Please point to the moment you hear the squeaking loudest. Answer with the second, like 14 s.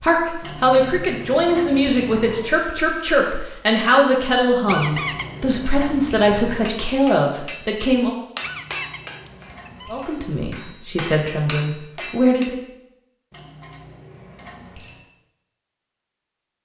5 s.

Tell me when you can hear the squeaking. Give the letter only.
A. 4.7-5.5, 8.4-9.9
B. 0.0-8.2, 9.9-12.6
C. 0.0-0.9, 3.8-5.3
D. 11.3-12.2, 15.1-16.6
A.